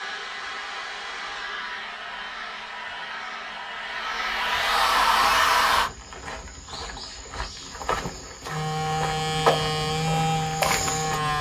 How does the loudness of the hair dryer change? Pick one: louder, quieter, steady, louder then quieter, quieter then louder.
louder.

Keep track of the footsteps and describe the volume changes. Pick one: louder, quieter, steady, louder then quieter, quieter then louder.
louder.